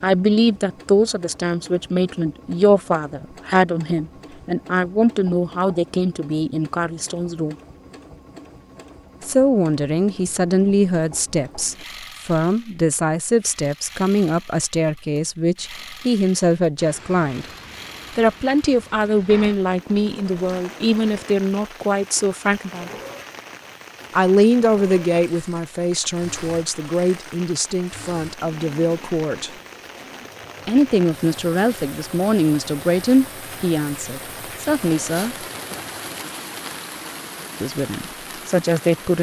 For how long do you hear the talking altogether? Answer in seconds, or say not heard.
32 s.